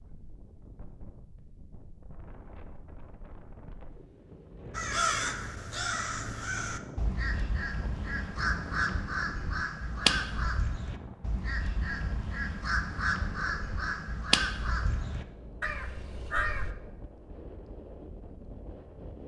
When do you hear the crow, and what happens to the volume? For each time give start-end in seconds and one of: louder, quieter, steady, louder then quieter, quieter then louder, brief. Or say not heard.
4.7-16.8 steady.